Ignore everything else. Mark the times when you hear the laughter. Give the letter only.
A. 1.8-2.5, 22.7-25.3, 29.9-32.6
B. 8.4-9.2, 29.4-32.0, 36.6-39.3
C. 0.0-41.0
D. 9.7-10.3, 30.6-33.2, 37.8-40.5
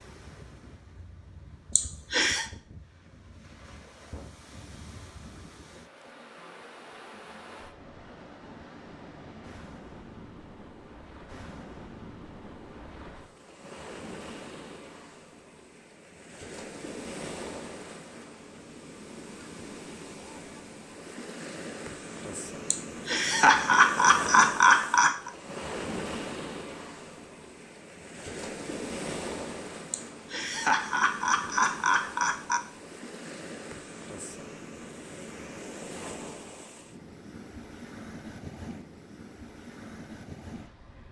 A.